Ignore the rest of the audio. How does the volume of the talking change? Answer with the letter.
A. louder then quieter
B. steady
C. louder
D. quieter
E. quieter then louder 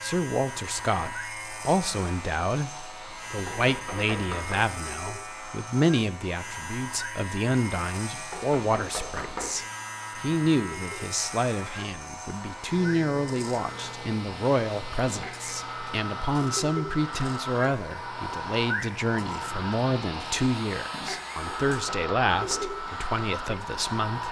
B.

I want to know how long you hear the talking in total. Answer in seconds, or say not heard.
24 s.